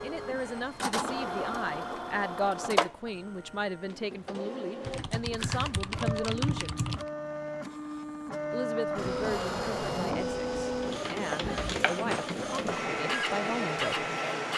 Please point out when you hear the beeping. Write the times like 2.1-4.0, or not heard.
not heard.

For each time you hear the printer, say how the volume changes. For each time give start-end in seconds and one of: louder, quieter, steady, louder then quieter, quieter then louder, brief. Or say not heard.
0.0-14.5 quieter then louder.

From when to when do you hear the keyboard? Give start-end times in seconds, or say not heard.
4.8-7.0.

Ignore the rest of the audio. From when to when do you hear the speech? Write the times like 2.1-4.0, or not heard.
0.0-6.8, 8.5-14.1.